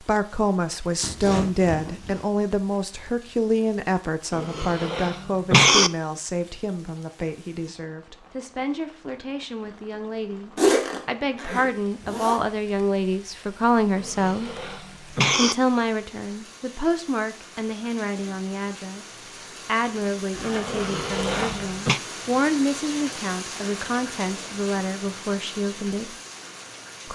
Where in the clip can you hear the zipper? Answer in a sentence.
The zipper can be heard from 1.0 to 2.2 s, from 10.6 to 12.4 s and from 20.3 to 21.8 s.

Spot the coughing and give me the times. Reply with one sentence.
The coughing can be heard from 4.3 to 5.9 s, from 13.9 to 15.6 s and from 20.6 to 22.0 s.